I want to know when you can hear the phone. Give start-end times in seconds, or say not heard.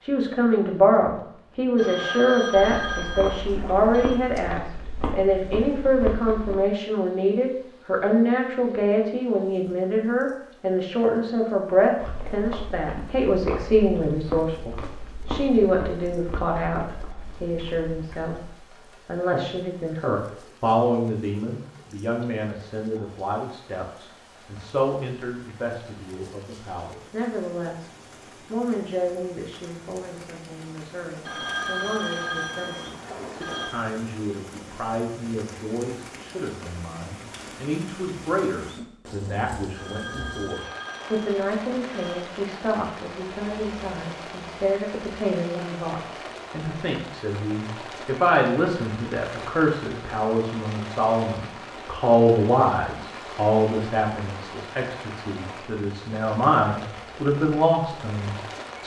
1.8-4.2, 31.2-33.7, 39.7-42.2.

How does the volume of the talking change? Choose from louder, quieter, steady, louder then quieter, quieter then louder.
quieter then louder.